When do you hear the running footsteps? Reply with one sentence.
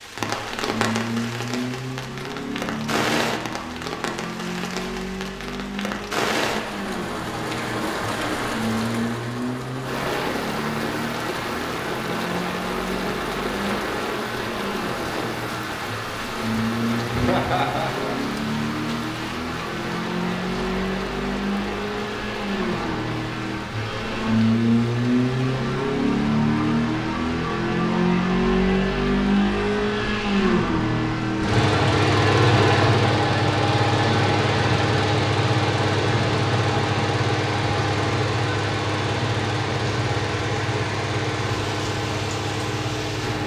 You can't hear the running footsteps here.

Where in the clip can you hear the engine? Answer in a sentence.
The engine can be heard from 0.2 to 43.4 s.